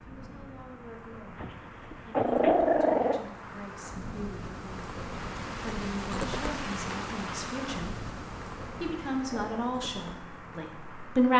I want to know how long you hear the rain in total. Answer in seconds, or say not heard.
11 s.